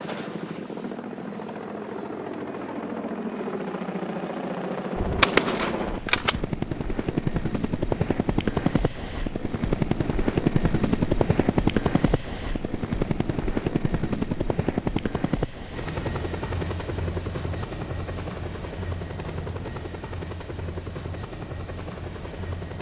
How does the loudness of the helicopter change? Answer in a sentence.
The loudness of the helicopter goes up, then down.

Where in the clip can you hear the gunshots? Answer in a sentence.
The gunshots can be heard from 5.0 to 6.4 s.